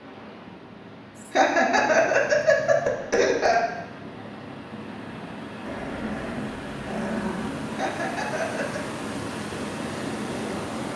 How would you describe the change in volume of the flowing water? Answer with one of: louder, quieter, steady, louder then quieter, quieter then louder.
louder.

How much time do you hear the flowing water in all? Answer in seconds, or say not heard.
11 s.